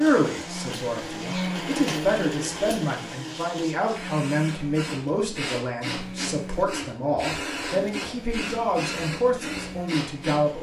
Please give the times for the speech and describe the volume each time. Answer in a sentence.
The speech can be heard from 0.0 to 10.5 s, at a steady volume.